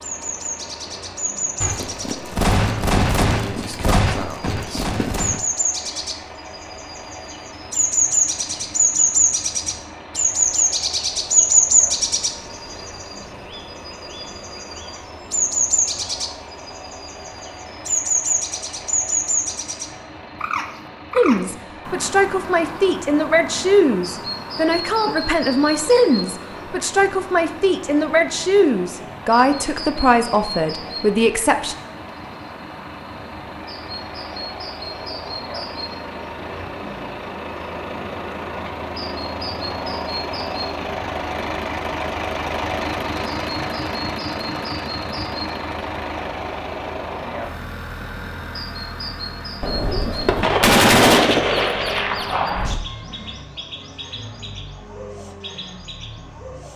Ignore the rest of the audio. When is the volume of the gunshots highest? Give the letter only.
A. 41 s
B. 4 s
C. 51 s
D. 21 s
C.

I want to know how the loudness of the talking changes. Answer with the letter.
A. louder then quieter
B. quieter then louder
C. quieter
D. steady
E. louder
D.